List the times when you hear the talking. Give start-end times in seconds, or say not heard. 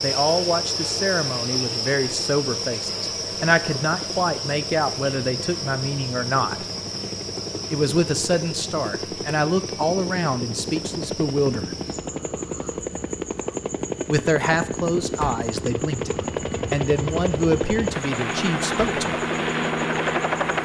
0.0-6.7, 7.7-11.8, 14.1-19.1.